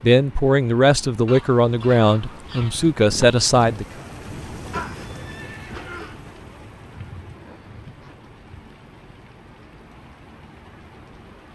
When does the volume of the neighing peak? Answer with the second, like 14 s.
5 s.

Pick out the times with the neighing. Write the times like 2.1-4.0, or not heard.
4.7-6.2.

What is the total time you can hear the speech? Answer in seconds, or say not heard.
4 s.